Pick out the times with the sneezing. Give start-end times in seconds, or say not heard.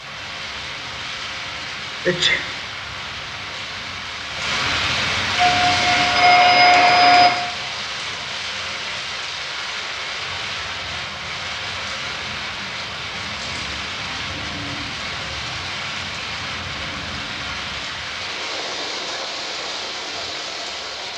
2.0-2.5.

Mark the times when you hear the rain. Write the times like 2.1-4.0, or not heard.
0.0-21.1.